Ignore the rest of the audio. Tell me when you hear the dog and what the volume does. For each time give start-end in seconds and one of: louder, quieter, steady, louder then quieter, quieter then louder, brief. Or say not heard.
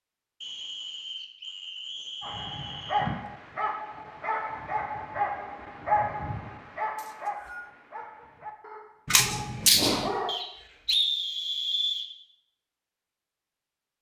2.2-10.3 quieter.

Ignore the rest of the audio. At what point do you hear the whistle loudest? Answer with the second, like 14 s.
11 s.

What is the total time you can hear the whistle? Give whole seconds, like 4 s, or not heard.
5 s.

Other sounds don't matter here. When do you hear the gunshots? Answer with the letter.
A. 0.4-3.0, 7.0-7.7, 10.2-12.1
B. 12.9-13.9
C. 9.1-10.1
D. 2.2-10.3
C.